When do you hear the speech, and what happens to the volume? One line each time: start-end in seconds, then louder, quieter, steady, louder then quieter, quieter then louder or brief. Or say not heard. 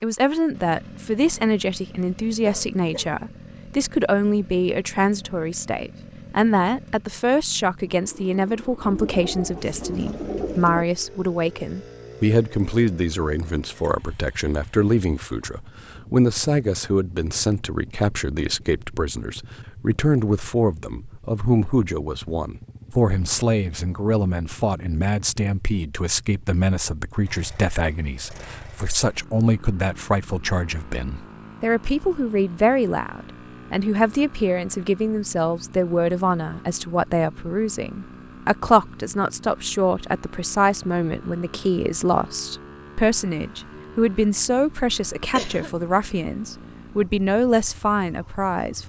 0.0-48.8 steady.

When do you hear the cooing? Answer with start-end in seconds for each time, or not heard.
8.8-10.8.